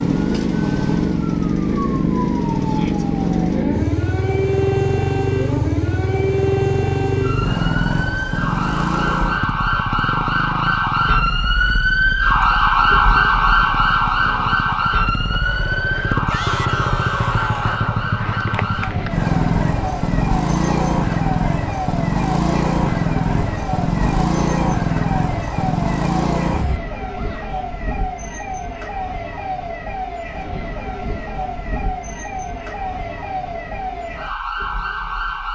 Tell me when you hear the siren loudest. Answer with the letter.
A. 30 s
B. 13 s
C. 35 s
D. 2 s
B.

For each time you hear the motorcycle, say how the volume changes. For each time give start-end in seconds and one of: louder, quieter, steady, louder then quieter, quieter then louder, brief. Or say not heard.
0.0-26.8 quieter then louder.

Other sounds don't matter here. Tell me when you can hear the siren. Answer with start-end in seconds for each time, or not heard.
0.0-35.4.